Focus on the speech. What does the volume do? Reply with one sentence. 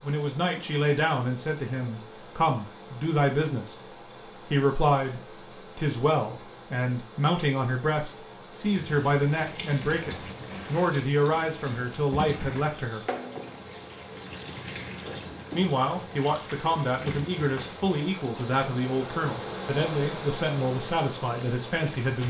The volume of the speech stays about the same.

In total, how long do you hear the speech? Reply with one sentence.
The speech can be heard for 19 seconds in total.